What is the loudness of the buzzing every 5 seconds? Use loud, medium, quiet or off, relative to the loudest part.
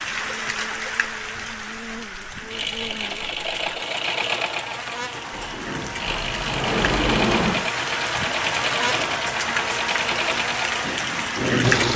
medium, loud, loud.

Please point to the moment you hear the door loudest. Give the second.
7 s.